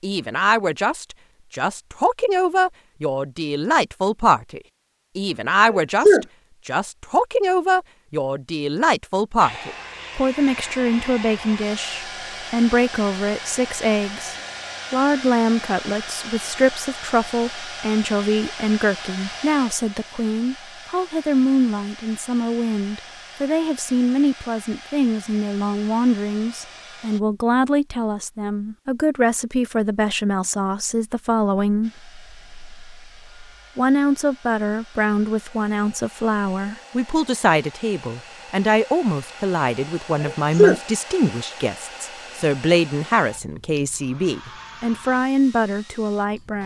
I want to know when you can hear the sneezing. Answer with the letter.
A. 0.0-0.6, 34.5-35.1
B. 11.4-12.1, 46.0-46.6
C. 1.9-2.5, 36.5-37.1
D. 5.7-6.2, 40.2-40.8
D.